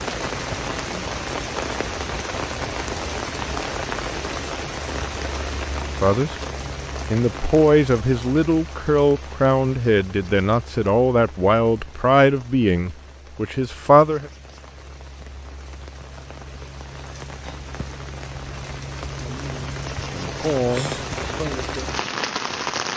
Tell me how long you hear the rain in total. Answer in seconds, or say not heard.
23 s.